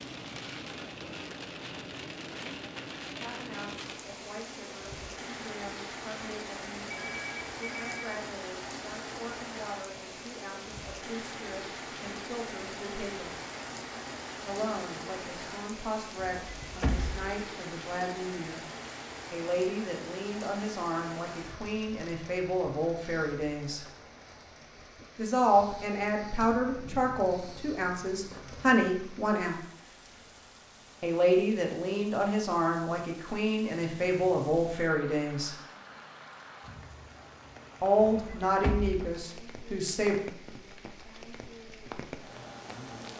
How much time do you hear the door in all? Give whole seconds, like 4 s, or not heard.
2 s.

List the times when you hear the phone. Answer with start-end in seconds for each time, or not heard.
6.9-8.1.